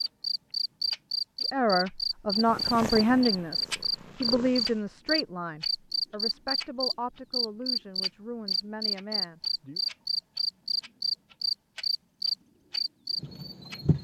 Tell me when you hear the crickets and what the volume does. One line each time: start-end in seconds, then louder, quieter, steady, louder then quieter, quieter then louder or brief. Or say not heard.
0.0-13.9 steady.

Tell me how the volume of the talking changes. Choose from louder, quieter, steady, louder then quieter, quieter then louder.
quieter.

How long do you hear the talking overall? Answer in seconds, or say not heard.
8 s.